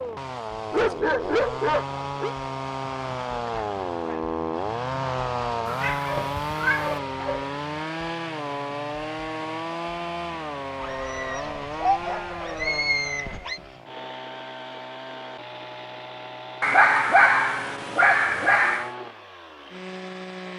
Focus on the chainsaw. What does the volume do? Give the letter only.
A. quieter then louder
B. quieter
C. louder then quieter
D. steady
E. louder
B.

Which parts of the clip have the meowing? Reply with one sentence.
The meowing can be heard from 5.7 to 7.0 s.